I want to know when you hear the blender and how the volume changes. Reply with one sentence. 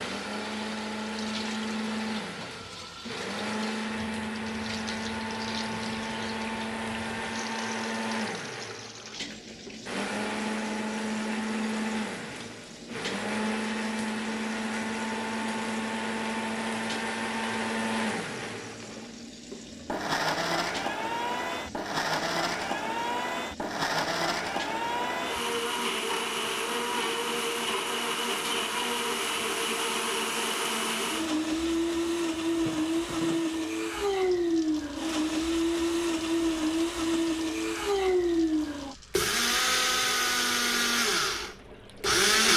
You can hear the blender from 0.0 to 42.5 s, getting louder.